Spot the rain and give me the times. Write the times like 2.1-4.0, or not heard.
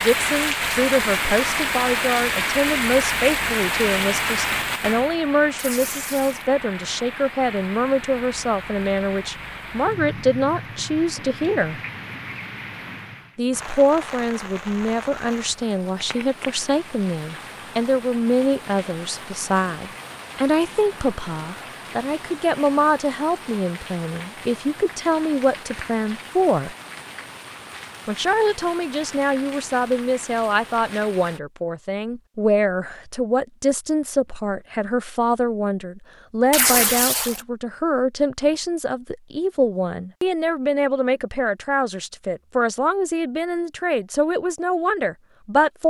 0.0-31.4.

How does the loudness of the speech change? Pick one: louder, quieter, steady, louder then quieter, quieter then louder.
steady.